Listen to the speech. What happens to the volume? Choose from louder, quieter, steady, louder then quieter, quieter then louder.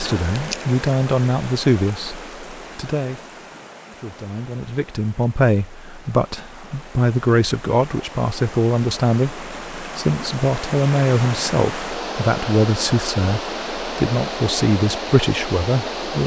steady.